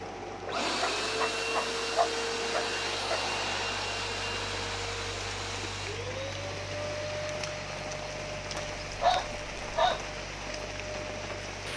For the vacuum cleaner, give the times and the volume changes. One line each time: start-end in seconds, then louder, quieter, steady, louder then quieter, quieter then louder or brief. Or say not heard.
0.0-11.7 quieter.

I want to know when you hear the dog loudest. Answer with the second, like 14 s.
9 s.